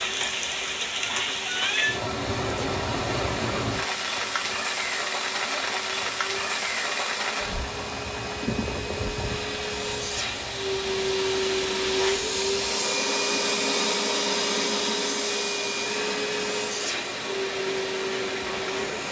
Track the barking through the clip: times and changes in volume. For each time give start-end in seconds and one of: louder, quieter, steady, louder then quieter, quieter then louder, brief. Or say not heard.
not heard.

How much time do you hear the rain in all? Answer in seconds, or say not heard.
19 s.